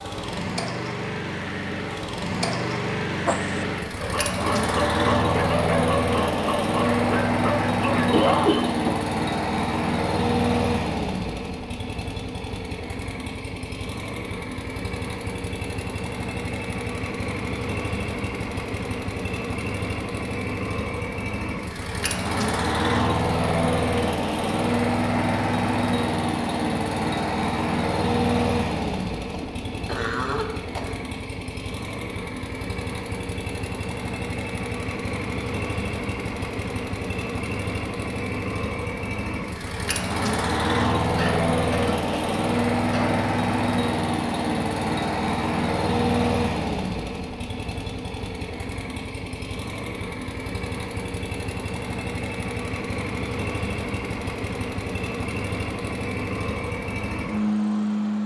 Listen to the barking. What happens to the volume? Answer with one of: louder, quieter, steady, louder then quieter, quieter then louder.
steady.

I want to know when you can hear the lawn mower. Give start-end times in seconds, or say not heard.
0.0-58.2.